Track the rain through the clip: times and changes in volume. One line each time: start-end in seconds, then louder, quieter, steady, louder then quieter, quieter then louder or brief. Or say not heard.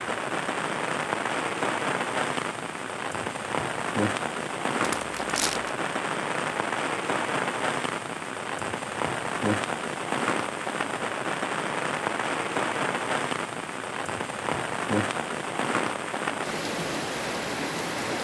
0.0-18.1 steady.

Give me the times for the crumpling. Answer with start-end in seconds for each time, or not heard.
4.8-5.8.